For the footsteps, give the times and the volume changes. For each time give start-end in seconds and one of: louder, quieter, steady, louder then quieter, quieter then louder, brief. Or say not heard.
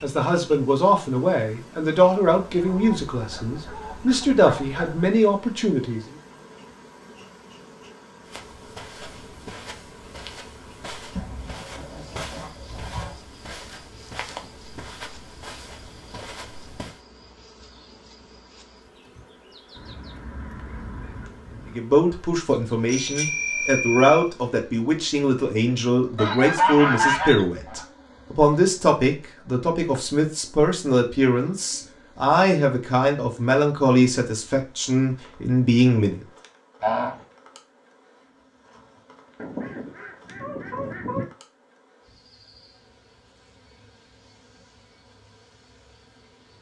8.2-17.0 steady.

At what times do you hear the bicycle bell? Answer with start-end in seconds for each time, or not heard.
22.9-24.3.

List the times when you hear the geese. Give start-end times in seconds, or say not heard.
2.5-5.2, 11.2-13.2, 19.8-21.8, 26.1-27.9, 36.8-37.2, 39.4-41.2.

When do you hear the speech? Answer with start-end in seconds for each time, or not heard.
0.0-6.0, 21.8-36.2.